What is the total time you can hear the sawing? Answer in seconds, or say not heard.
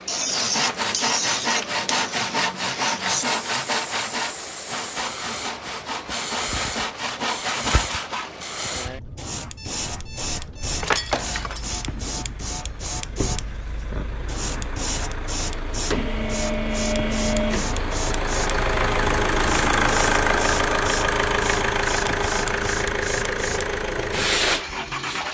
8 s.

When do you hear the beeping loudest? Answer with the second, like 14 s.
11 s.